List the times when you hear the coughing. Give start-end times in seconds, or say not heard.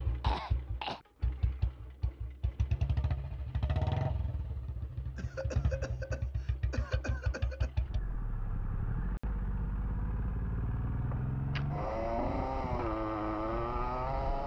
0.2-1.0, 5.2-7.7, 11.1-11.8.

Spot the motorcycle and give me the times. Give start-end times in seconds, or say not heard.
0.0-14.4.